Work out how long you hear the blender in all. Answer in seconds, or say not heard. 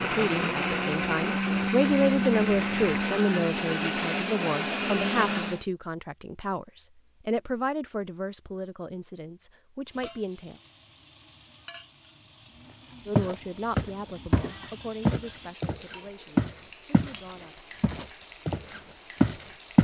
6 s.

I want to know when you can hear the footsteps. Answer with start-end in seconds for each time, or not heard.
13.2-17.1, 17.8-19.7.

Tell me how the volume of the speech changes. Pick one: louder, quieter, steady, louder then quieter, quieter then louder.
quieter.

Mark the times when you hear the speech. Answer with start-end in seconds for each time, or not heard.
0.0-10.6, 13.1-17.6.